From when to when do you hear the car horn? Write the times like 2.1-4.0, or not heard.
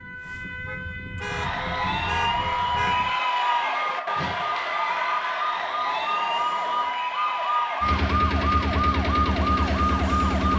0.7-3.0.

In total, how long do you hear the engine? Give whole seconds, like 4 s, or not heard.
3 s.